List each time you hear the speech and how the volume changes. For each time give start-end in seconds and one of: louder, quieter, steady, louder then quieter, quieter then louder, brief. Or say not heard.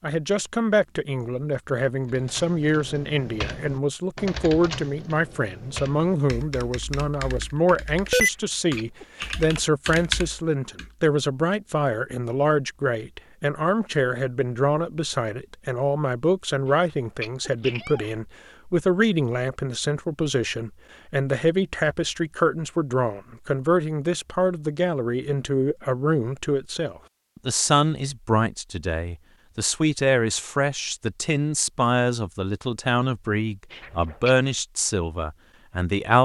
0.0-36.2 steady.